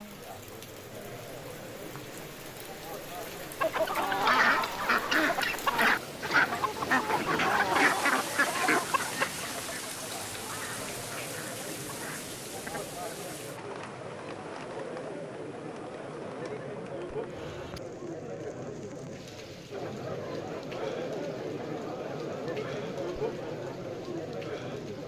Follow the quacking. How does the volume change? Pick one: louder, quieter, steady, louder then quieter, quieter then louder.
quieter.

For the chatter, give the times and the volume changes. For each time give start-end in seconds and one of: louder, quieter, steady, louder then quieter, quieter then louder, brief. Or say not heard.
0.0-25.0 louder.